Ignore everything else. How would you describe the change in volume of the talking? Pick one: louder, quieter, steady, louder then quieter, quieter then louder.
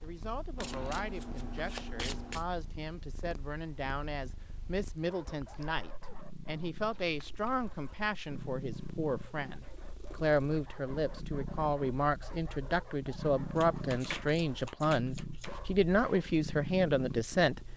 louder.